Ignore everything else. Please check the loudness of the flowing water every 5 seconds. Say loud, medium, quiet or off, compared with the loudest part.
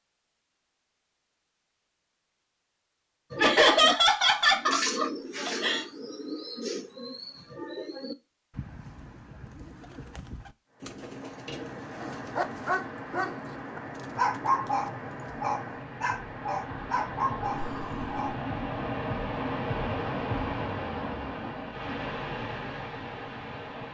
off, off, medium, loud, loud.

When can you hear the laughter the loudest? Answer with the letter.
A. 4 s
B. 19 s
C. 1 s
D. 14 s
A.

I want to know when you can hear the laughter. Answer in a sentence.
You can hear the laughter from 3.4 to 5.8 s and from 17.5 to 18.1 s.